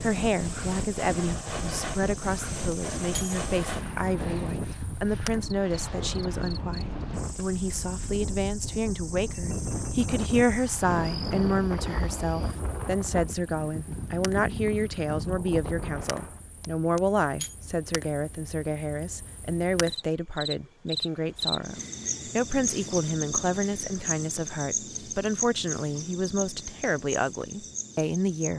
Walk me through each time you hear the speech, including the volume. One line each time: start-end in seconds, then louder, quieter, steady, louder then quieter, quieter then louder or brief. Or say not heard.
0.0-28.5 steady.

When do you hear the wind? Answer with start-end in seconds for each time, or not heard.
0.0-16.4.